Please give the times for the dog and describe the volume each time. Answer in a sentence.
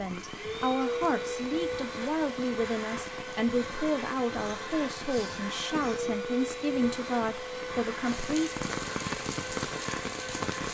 The dog can't be heard in this clip.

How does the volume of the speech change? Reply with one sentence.
The volume of the speech stays about the same.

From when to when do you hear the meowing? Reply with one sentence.
The meowing can't be heard in this clip.